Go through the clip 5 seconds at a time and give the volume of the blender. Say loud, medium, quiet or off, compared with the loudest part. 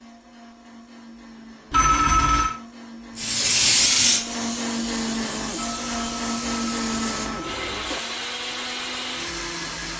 medium, loud.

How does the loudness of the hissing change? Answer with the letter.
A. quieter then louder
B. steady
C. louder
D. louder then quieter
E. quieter
E.